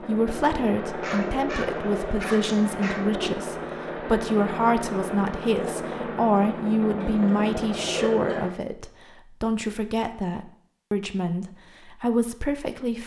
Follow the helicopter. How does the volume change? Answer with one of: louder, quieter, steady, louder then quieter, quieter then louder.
steady.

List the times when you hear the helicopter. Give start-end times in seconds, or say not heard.
0.0-8.5.